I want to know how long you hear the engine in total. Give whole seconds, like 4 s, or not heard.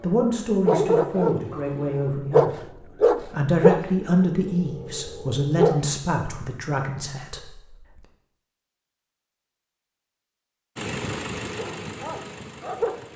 2 s.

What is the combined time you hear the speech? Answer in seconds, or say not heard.
8 s.